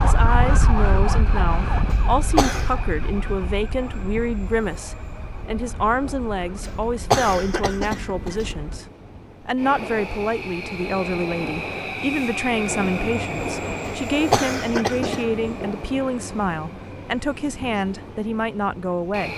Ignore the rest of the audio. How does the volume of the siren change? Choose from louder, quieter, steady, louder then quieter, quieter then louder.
quieter.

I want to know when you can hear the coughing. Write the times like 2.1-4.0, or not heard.
1.9-2.7, 6.6-8.5, 13.8-15.3.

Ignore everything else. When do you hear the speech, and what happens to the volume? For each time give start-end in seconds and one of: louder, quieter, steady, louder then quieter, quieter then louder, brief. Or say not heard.
0.0-19.3 steady.